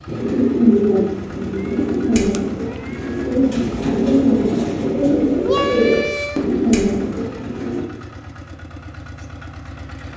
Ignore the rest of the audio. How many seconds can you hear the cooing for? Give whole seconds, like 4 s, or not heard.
8 s.